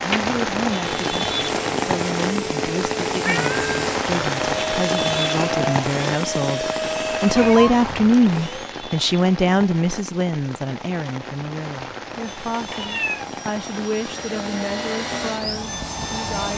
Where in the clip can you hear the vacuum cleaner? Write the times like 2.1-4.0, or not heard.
0.0-8.8, 12.2-16.5.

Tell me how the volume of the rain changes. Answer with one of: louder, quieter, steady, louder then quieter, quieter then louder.
quieter.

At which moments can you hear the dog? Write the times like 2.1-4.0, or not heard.
not heard.